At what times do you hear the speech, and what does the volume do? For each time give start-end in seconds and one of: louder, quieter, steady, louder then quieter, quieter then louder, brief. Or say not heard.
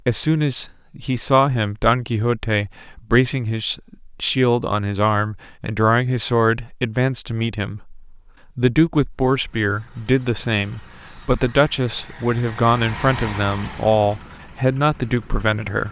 0.1-15.8 steady.